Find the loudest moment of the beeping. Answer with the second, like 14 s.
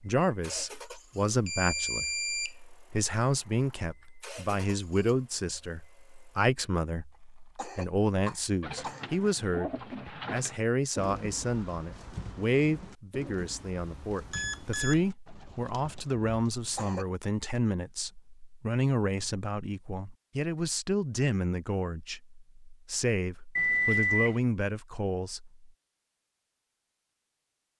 24 s.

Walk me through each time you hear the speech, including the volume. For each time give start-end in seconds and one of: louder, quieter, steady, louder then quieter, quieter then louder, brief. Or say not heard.
0.0-25.6 steady.